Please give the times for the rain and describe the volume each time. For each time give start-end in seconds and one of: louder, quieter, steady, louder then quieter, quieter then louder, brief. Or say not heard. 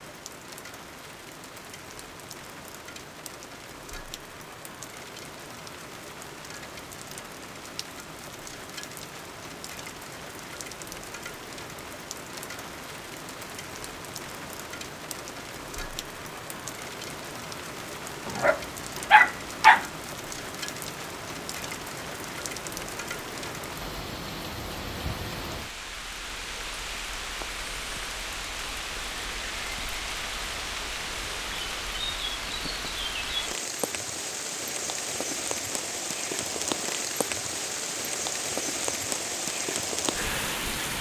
0.0-40.9 louder.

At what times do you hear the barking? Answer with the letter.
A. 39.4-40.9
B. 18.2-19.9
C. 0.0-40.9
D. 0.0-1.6
B.